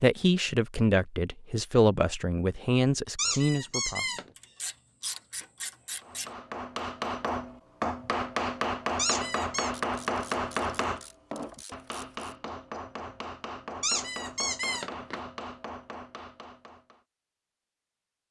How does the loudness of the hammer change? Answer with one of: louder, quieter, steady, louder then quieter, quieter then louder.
quieter.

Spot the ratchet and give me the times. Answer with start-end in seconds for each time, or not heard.
4.3-6.3, 9.8-12.3.